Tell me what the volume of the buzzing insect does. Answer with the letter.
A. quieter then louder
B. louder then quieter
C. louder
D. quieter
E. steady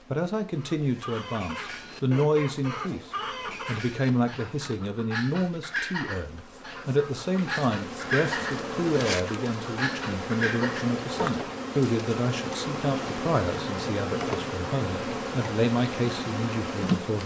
C.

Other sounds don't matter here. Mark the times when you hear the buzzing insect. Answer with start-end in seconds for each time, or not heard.
0.0-17.2.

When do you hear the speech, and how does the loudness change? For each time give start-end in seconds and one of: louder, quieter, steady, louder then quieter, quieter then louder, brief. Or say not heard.
0.1-17.2 steady.